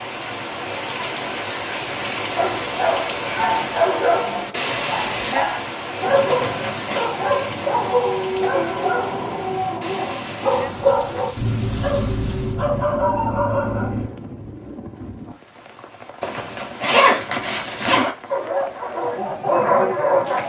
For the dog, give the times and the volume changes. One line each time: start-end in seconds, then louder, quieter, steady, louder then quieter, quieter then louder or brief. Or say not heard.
2.4-14.1 steady
18.3-20.4 brief.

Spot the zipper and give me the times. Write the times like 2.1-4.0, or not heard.
6.2-7.1, 16.2-18.1.